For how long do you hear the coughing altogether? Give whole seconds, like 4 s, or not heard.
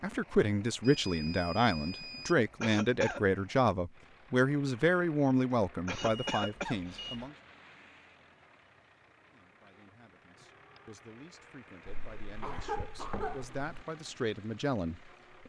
4 s.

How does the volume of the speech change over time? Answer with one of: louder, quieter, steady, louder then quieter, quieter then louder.
quieter then louder.